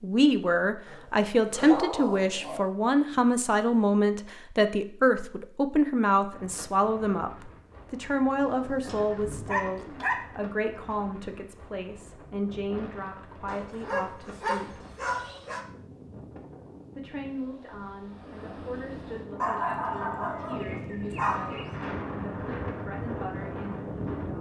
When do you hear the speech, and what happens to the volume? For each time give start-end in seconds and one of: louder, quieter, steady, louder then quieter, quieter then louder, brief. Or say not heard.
0.0-14.8 quieter
16.9-24.3 steady.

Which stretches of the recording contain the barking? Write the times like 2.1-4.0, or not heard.
0.8-2.6, 8.4-10.2, 13.4-15.7, 19.4-21.7.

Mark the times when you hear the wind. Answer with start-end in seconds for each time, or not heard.
6.3-24.3.